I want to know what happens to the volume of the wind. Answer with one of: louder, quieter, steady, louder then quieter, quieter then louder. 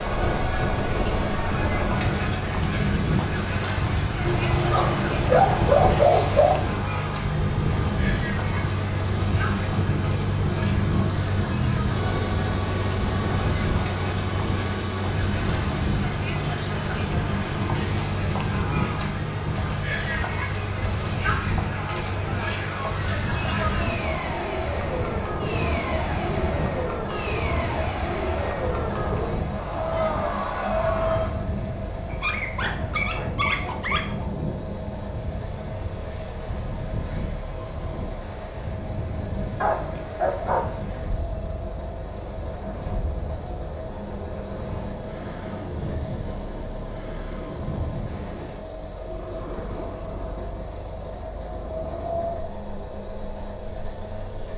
quieter.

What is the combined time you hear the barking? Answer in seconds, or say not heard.
6 s.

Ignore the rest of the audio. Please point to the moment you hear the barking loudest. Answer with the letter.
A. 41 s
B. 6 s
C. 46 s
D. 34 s
B.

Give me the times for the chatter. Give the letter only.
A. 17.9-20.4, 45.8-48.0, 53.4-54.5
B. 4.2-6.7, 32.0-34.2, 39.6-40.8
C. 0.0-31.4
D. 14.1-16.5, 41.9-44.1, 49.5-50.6
C.